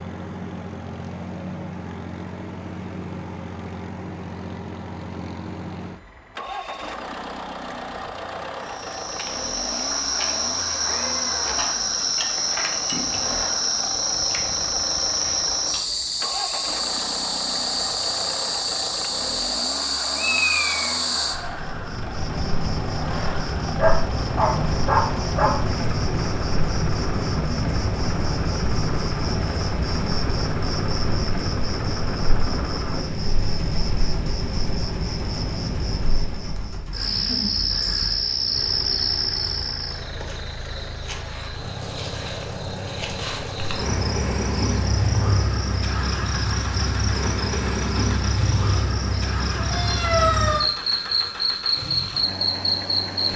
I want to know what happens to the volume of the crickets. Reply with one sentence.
The volume of the crickets stays about the same.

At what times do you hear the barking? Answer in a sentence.
The barking can be heard from 23.8 to 25.6 s.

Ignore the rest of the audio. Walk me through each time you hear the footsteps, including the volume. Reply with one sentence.
You can't hear the footsteps here.